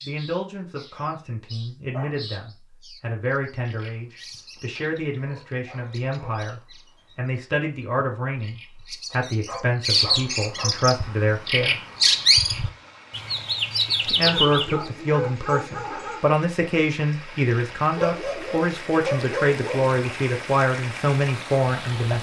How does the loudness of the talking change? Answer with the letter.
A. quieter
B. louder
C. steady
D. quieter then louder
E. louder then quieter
B.